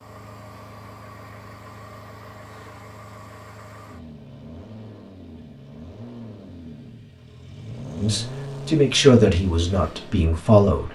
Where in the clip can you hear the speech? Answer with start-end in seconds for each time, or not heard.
8.0-10.8.